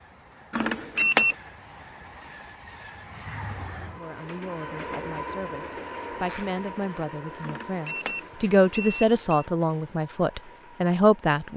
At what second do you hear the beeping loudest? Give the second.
1 s.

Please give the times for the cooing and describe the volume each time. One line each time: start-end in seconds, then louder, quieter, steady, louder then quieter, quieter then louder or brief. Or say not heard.
not heard.